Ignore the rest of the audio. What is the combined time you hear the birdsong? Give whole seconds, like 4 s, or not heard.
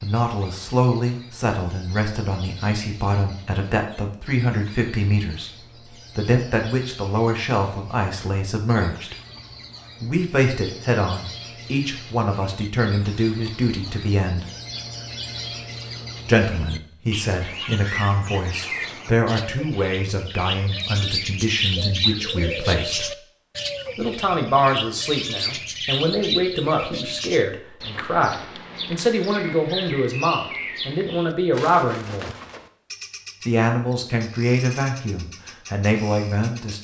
37 s.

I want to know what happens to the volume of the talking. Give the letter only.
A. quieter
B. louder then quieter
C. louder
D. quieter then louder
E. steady
E.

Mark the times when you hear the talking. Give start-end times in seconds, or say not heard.
0.0-9.2, 10.0-14.4, 16.2-23.1, 23.9-32.3, 33.5-36.7.